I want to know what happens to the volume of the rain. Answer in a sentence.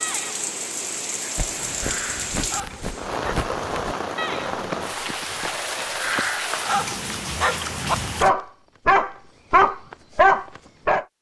The loudness of the rain stays about the same.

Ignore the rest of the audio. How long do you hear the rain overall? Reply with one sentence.
You can hear the rain for 8 seconds altogether.